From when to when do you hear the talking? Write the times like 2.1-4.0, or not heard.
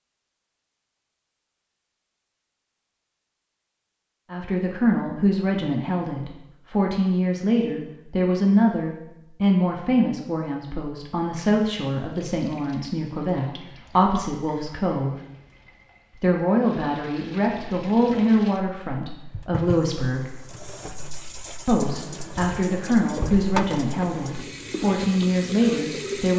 4.3-15.2, 16.2-20.3, 21.6-26.3.